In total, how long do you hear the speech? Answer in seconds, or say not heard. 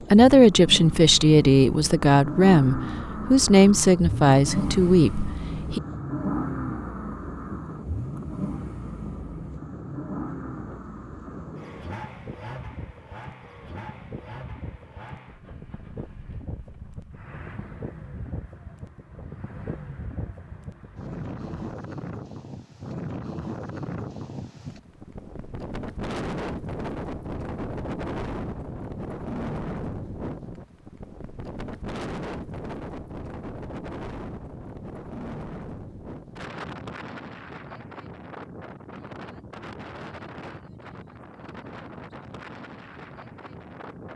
6 s.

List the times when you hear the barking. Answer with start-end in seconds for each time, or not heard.
not heard.